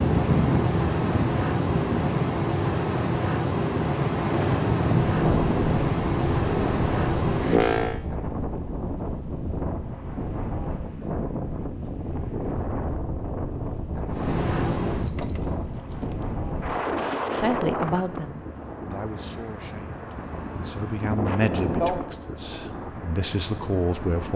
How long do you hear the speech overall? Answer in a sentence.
The speech can be heard for 7 seconds in total.